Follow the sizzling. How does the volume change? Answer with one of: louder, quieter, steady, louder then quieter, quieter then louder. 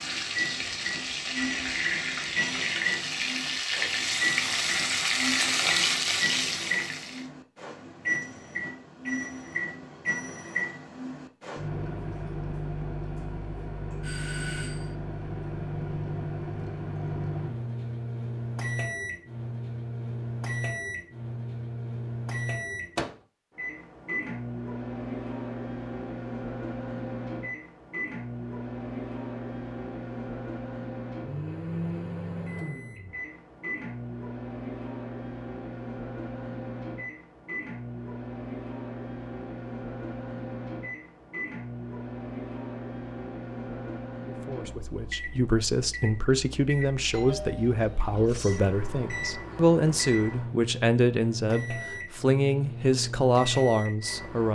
louder.